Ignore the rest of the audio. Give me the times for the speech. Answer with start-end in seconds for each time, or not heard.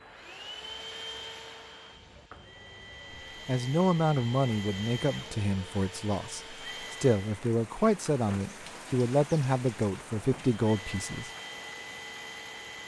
3.5-11.3.